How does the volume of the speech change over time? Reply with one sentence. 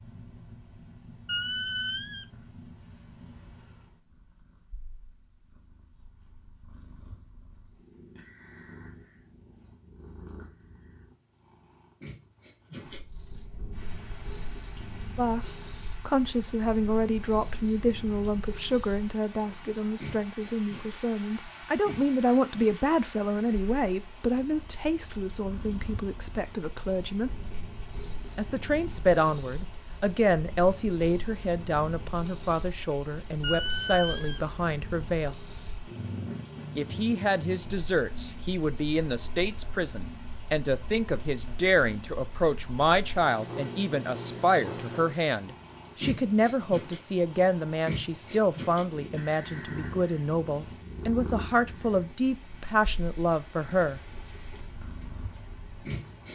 The volume of the speech stays about the same.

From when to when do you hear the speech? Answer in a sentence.
The speech can be heard from 15.2 to 27.4 s, from 28.4 to 35.4 s and from 36.8 to 54.0 s.